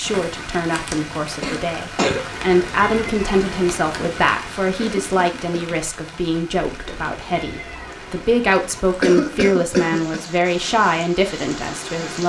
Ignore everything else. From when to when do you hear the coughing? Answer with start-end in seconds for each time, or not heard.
1.4-2.2, 4.8-5.8, 9.0-10.2.